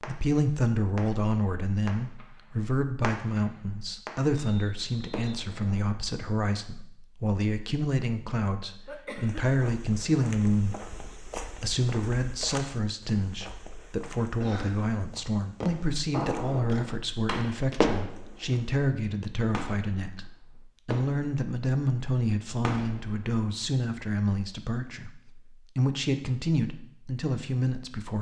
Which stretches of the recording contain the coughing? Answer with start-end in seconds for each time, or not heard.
8.8-9.4, 14.2-14.8.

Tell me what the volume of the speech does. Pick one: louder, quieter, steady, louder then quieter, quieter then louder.
steady.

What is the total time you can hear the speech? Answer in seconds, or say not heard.
28 s.